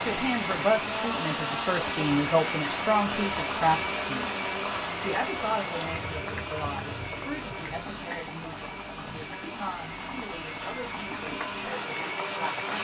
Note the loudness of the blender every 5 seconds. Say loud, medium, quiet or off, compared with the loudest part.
loud, medium, loud.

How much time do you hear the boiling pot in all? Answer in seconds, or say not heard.
13 s.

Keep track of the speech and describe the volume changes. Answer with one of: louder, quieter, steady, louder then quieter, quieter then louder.
quieter.